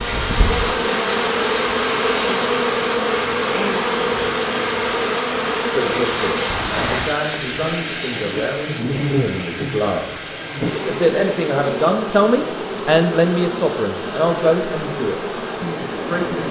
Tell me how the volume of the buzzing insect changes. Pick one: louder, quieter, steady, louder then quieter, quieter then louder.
quieter.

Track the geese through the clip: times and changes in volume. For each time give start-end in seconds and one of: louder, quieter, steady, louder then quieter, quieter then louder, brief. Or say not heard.
not heard.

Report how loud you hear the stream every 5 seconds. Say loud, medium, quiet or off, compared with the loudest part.
loud, loud, medium, loud.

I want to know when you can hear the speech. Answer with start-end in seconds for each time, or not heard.
5.6-16.4.